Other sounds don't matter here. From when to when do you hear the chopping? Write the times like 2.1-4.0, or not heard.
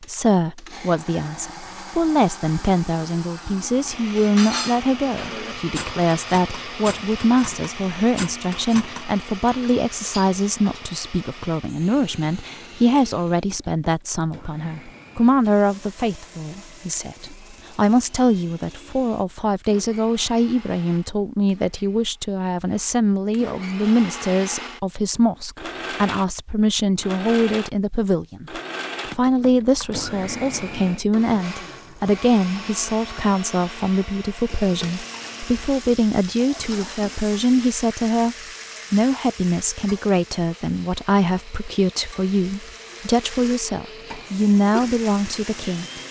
not heard.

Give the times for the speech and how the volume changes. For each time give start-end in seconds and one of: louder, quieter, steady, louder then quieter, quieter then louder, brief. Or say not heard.
0.0-28.6 steady
29.1-46.0 steady.